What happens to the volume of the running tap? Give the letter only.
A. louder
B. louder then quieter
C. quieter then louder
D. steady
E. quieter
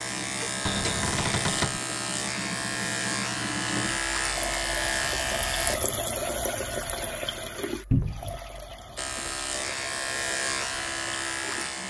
B.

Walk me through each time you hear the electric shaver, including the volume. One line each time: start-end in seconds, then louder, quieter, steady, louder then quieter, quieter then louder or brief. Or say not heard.
0.0-5.8 steady
8.9-11.8 brief.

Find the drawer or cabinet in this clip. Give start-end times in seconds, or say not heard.
0.7-1.8, 7.9-8.4.